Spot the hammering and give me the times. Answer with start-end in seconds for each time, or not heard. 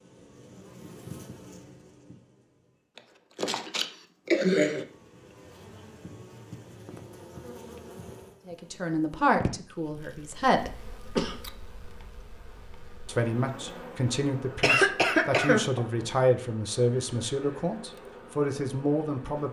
not heard.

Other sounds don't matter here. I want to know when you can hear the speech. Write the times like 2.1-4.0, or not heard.
8.4-10.8, 13.1-19.4.